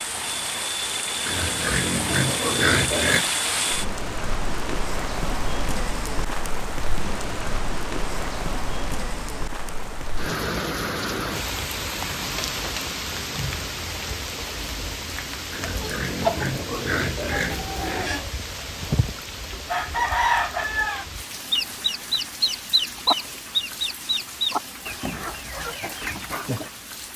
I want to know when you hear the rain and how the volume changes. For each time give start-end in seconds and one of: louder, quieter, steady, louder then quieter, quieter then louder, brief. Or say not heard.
0.0-27.1 quieter.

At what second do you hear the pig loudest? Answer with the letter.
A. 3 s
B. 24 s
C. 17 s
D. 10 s
A.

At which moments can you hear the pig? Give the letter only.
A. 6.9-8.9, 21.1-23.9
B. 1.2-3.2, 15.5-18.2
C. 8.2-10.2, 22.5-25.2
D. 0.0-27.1
B.